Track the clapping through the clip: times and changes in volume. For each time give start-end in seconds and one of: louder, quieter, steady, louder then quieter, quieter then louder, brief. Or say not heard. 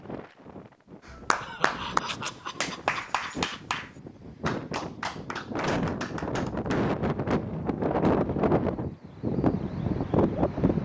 1.1-8.2 quieter.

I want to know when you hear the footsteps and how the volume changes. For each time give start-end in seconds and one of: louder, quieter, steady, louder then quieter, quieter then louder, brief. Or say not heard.
not heard.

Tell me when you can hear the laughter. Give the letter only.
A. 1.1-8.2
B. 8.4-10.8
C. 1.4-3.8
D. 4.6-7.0
C.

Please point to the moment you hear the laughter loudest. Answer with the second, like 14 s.
2 s.